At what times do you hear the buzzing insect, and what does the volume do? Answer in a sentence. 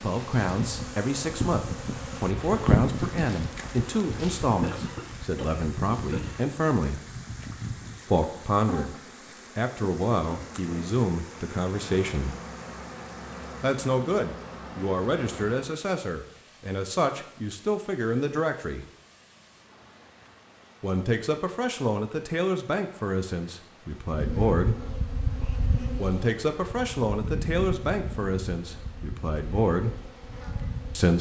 The buzzing insect can be heard from 0.0 to 15.7 s, getting quieter; and from 24.1 to 31.1 s, getting quieter.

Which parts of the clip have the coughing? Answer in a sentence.
You can hear the coughing from 4.6 to 6.5 s.